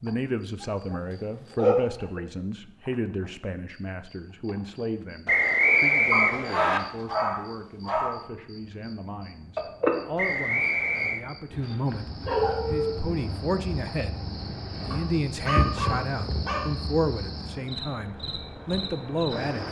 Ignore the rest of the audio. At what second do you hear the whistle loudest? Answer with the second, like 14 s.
6 s.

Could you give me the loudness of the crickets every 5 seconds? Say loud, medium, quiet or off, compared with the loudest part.
quiet, loud, medium, loud.